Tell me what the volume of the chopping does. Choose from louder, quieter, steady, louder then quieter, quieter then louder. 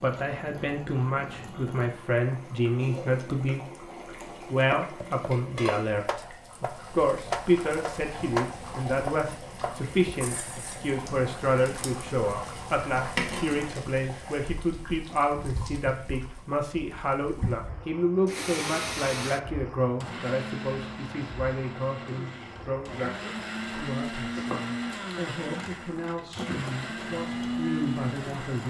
louder then quieter.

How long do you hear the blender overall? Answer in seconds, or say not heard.
10 s.